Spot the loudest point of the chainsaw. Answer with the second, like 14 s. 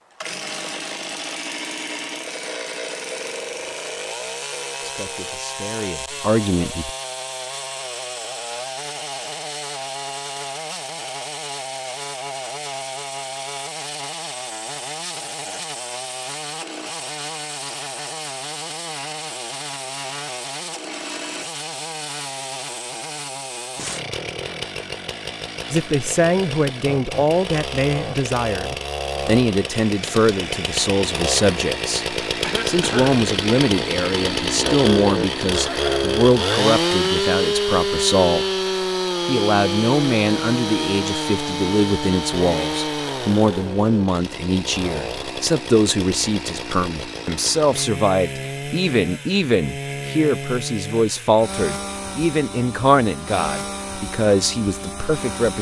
37 s.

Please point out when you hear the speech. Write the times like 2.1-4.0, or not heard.
4.8-6.9, 25.7-38.5, 39.2-55.5.